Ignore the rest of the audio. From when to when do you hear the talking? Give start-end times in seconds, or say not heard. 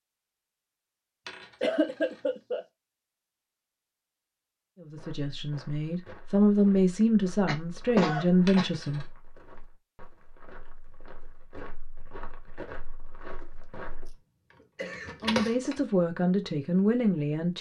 4.8-9.1, 15.2-17.5.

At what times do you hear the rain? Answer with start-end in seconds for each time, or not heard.
not heard.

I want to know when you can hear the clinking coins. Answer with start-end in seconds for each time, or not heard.
1.2-2.3, 8.4-9.1, 14.9-15.8.